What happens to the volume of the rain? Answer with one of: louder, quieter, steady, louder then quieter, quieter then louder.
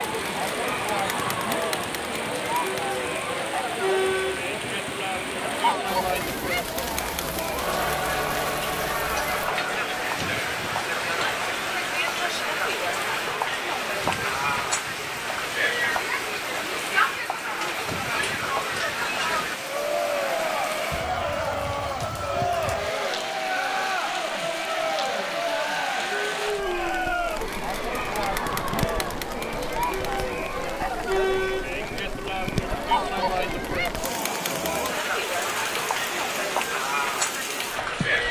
steady.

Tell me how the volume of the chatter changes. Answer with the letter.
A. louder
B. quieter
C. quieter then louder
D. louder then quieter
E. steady
E.